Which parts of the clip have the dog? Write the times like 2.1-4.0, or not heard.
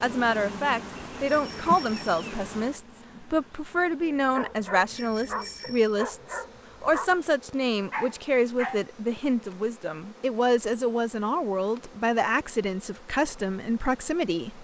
4.2-9.2.